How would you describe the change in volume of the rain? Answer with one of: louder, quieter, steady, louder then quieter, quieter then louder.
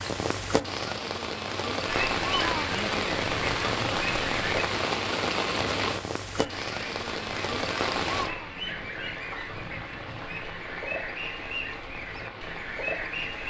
quieter.